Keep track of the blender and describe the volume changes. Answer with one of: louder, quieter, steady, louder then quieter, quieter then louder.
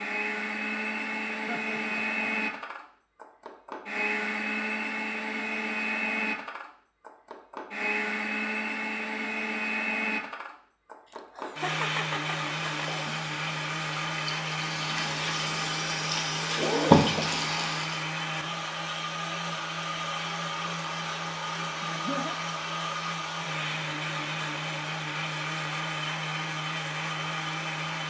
steady.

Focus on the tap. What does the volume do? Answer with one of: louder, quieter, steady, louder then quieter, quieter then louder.
louder.